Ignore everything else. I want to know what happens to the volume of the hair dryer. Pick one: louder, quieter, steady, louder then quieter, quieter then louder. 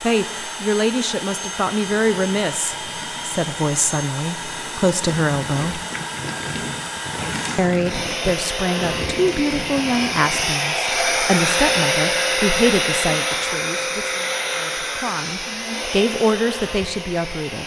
louder then quieter.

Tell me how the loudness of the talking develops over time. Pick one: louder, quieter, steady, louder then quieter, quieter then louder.
steady.